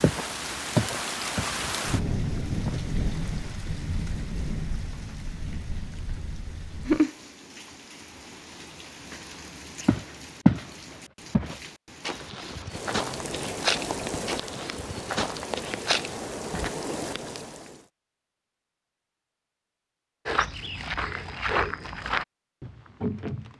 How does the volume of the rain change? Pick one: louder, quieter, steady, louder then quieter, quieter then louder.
quieter then louder.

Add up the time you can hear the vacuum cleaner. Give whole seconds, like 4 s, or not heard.
not heard.